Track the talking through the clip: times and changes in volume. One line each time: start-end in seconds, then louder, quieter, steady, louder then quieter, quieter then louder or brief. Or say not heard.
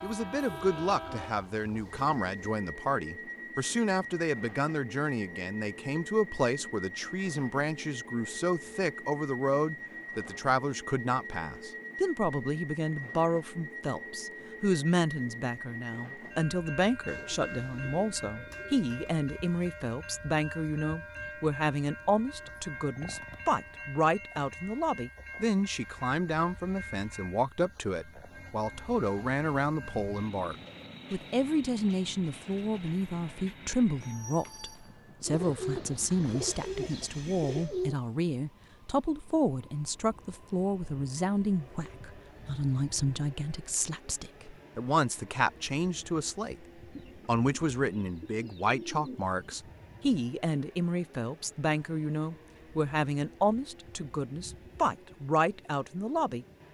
0.0-46.6 steady
47.2-56.5 steady.